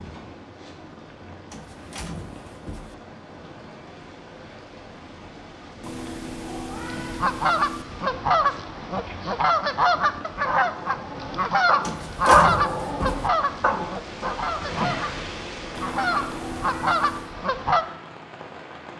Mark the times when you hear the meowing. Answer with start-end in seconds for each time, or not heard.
5.8-7.8, 15.8-17.4.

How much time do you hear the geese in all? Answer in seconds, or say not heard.
11 s.